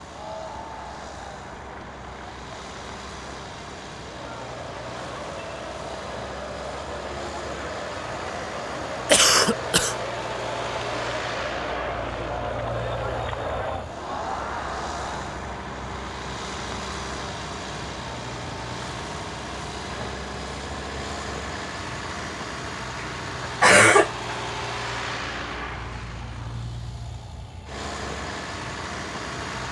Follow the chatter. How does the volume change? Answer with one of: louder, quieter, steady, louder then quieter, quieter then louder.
louder.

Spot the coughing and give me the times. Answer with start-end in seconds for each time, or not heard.
9.1-9.9, 23.0-24.4.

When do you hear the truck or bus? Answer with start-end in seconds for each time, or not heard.
0.0-29.6.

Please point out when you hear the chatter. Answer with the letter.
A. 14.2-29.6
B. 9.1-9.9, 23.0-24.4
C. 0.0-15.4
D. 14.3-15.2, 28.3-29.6
C.